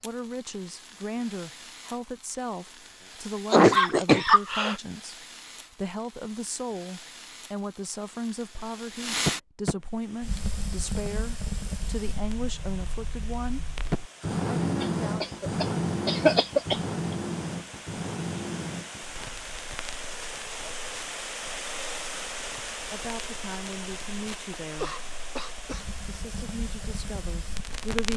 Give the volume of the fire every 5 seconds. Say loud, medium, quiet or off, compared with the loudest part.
quiet, loud, loud, loud, quiet, medium.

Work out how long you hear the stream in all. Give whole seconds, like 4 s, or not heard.
18 s.